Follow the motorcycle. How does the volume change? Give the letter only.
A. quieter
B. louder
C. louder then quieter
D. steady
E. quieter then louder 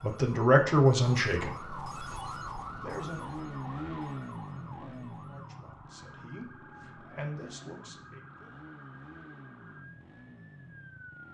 A.